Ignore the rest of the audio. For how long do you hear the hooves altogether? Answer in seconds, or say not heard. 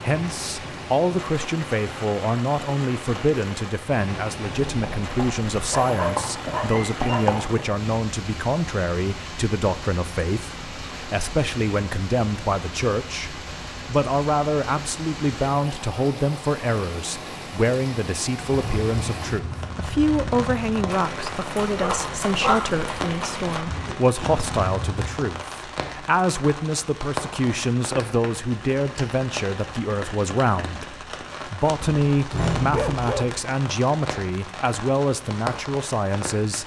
10 s.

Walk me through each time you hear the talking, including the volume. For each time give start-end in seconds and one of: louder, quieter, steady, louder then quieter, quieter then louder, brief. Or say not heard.
0.0-36.6 steady.